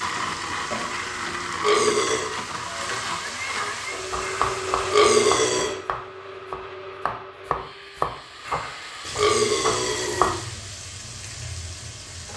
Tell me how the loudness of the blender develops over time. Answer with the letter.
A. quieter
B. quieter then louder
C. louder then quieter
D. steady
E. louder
A.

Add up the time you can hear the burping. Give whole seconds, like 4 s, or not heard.
5 s.